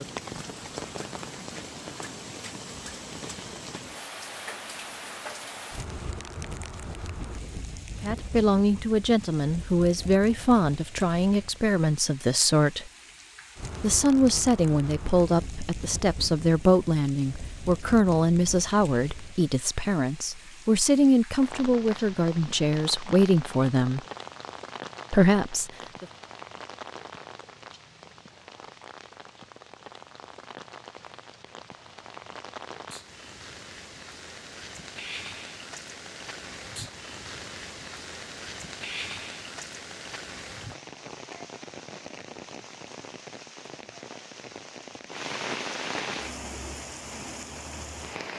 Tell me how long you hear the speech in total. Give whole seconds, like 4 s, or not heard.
16 s.